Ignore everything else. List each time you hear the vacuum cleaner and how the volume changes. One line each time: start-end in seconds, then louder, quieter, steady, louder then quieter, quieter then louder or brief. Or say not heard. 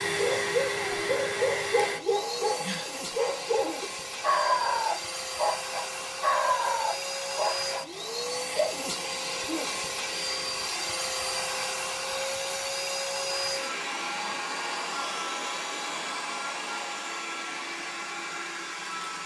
0.0-19.2 steady.